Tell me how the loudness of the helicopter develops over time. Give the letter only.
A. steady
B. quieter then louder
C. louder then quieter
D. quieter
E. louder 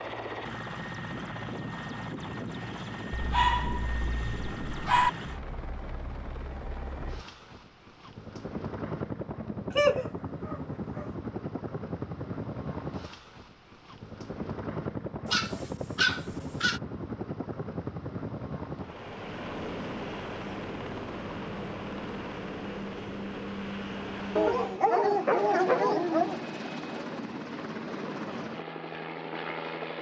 A.